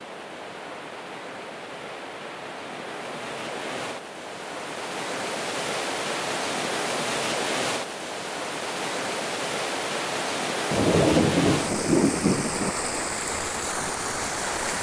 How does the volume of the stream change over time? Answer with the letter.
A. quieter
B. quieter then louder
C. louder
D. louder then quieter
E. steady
C.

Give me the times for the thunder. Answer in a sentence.
You can hear the thunder from 10.7 to 12.7 s.